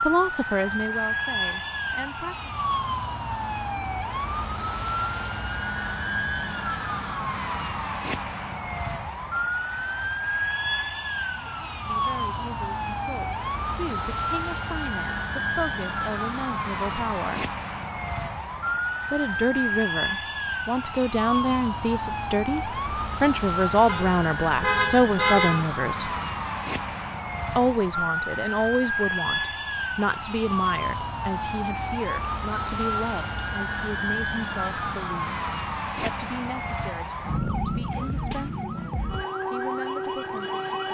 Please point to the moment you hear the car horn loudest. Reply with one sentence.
The loudest moment of the car horn is at 25 seconds.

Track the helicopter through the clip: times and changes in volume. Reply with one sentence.
You can't hear the helicopter here.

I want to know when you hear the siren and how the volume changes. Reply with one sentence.
You can hear the siren from 0.0 to 40.9 s, at a steady volume.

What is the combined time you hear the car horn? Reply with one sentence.
The car horn can be heard for 2 seconds in total.